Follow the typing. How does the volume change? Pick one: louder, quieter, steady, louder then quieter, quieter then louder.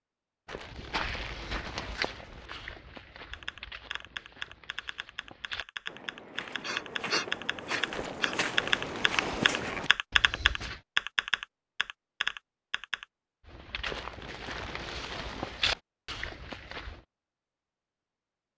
louder.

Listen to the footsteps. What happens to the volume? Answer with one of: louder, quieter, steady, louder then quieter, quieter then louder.
quieter then louder.